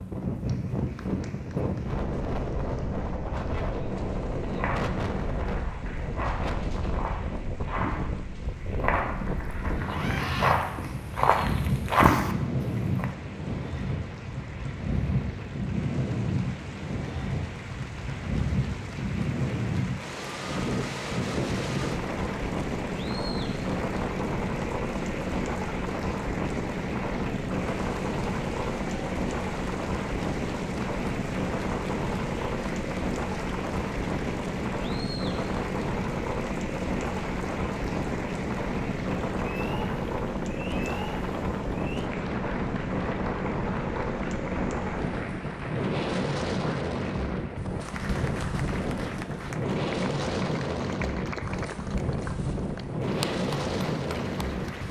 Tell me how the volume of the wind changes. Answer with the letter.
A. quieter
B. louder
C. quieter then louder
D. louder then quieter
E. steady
E.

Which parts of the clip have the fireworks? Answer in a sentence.
The fireworks can't be heard in this clip.